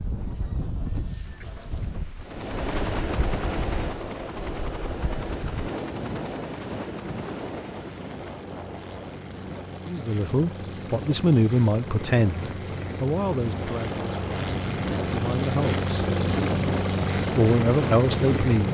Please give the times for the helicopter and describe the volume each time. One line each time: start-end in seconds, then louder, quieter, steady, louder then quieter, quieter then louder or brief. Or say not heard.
2.2-18.6 quieter then louder.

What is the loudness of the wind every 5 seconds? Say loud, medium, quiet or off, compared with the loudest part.
medium, medium, medium, loud.